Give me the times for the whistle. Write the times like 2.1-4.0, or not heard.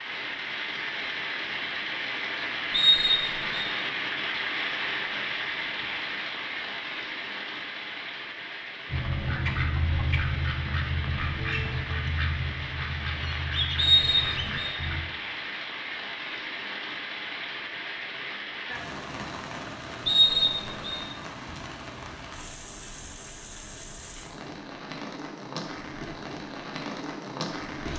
2.7-3.7, 13.8-14.8, 20.1-21.0.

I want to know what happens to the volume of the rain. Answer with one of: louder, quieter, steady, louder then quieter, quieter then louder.
quieter.